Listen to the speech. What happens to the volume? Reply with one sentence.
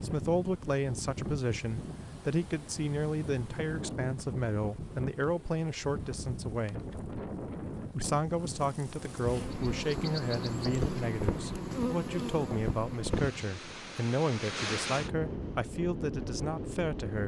The loudness of the speech stays about the same.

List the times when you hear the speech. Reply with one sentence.
The speech can be heard from 0.0 to 6.9 s and from 7.9 to 17.2 s.